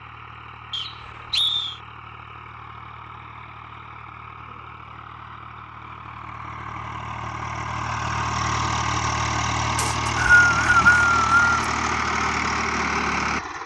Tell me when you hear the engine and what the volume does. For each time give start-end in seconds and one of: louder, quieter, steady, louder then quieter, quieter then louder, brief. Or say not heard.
0.0-13.6 louder.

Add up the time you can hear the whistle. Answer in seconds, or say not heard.
3 s.